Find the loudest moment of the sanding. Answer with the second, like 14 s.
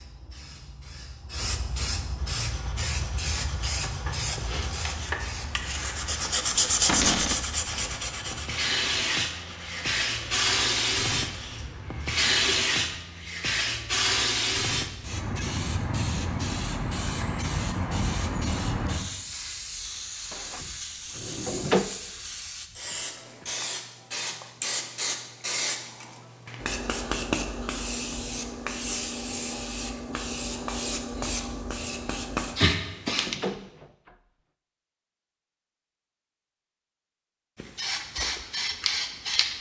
7 s.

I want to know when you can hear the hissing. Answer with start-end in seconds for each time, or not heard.
0.0-33.4, 37.5-39.5.